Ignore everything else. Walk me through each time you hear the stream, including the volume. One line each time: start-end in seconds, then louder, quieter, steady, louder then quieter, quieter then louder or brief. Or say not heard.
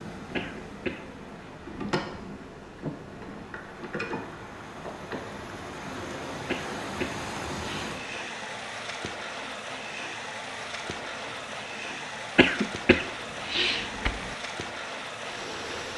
0.0-15.9 louder.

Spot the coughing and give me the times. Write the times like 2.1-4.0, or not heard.
0.3-1.1, 6.5-8.0, 12.3-14.3.